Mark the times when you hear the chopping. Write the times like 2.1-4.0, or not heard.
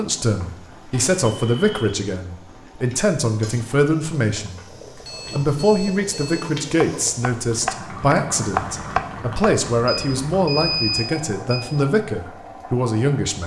6.8-9.6.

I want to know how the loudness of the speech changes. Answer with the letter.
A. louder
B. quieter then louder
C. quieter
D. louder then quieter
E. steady
E.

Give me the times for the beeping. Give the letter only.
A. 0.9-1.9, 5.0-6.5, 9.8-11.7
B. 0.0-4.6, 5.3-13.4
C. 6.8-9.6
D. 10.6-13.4
A.